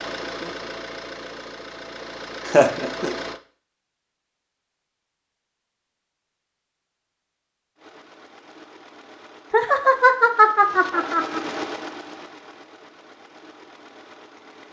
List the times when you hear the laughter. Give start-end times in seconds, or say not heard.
2.5-3.1, 9.5-11.4.